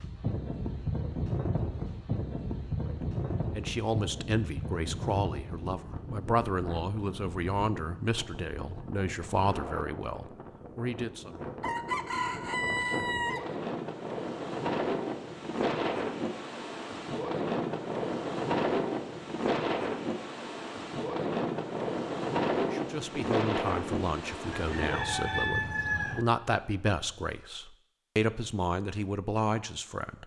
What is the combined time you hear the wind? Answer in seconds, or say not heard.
25 s.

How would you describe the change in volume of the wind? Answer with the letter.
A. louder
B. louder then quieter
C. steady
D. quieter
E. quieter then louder
E.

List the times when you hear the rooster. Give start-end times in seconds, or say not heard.
11.6-13.4, 24.5-26.2.